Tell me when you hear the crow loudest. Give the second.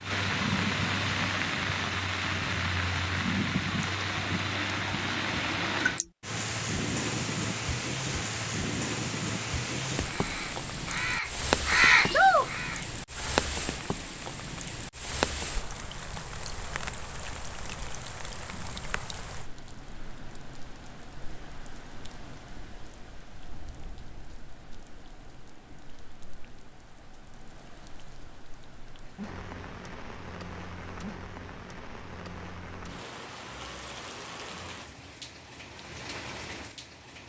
12 s.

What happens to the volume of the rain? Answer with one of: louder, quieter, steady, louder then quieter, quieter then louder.
quieter then louder.